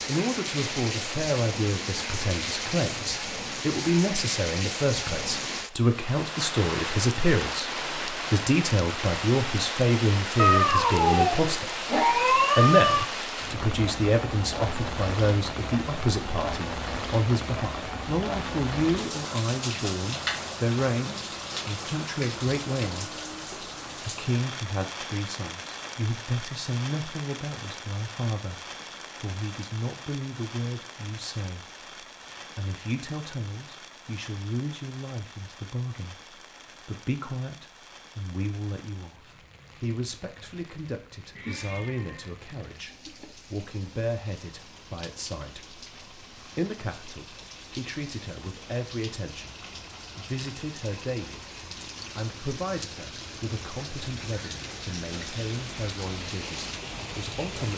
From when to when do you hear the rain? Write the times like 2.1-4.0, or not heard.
0.0-57.7.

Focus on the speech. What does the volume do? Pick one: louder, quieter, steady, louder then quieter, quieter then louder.
quieter.